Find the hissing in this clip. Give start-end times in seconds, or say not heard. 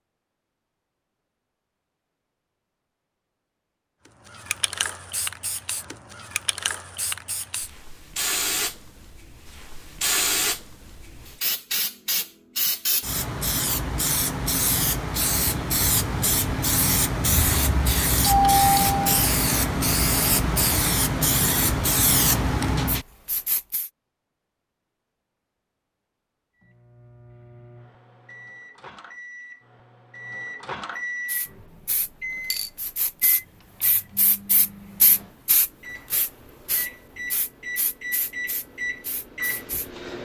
4.0-23.9, 31.2-39.9.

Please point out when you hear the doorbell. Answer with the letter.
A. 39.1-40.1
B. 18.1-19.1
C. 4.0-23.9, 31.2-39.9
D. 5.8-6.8
B.